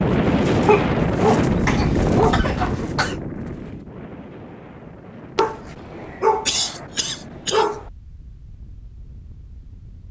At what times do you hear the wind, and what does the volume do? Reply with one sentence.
You can hear the wind from 0.0 to 10.0 s, getting quieter.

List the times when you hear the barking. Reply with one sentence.
The barking can be heard from 0.7 to 2.5 s and from 5.3 to 7.8 s.